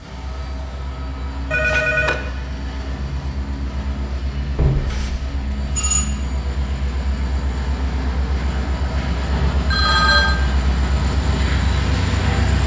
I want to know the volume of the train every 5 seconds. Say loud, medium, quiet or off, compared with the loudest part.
medium, medium, loud.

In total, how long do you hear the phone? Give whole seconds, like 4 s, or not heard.
3 s.